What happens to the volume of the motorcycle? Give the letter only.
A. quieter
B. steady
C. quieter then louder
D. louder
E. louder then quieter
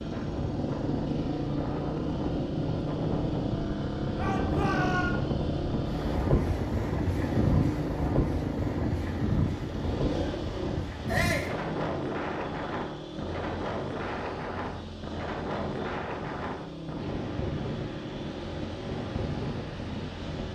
A.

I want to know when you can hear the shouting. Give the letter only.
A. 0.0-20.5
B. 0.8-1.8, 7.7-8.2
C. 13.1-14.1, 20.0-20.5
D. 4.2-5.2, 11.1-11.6
D.